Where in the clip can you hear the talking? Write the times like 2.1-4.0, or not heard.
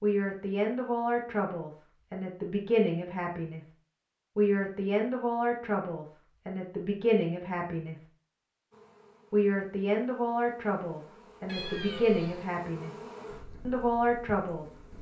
0.0-3.6, 4.3-8.0, 9.3-12.9, 13.7-14.7.